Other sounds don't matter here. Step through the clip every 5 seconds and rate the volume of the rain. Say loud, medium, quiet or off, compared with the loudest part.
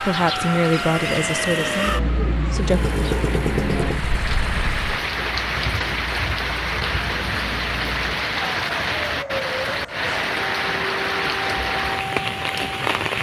medium, loud, loud.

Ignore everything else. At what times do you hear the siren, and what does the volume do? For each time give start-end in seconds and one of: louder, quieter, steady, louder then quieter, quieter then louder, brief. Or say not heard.
0.0-13.1 quieter then louder.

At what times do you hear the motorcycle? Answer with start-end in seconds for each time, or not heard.
2.5-4.9.